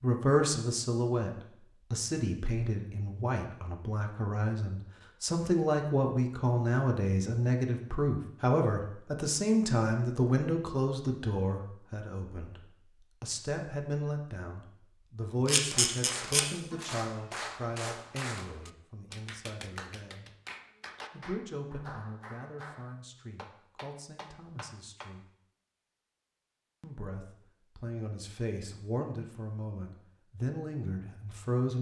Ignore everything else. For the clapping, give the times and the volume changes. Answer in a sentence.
The clapping can be heard from 15.7 to 25.1 s, getting quieter.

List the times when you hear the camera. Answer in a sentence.
You can hear the camera from 15.4 to 16.4 s.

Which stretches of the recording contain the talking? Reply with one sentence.
The talking can be heard from 0.0 to 1.3 s, from 1.9 to 12.6 s, from 13.2 to 20.3 s, from 21.1 to 25.2 s and from 26.8 to 31.7 s.